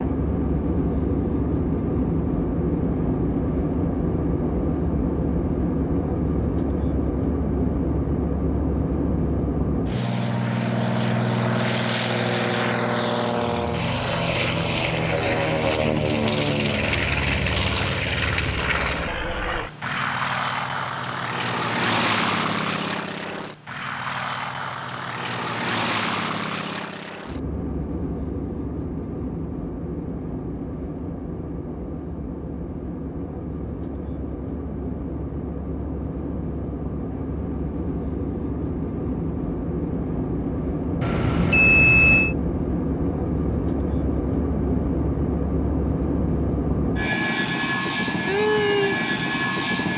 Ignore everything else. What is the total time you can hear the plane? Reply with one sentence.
You can hear the plane for 50 seconds altogether.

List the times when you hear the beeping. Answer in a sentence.
You can hear the beeping from 41.0 to 42.4 s.